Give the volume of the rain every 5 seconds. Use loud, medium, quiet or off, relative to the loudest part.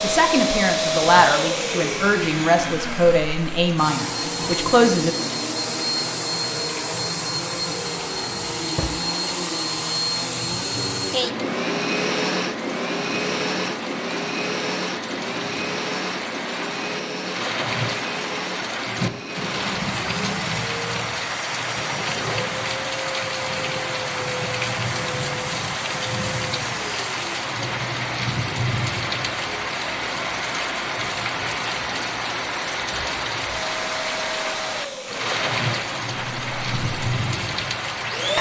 medium, medium, medium, loud, loud, loud, loud, loud.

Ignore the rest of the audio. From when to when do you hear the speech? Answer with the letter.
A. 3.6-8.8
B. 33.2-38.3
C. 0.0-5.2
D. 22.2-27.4
C.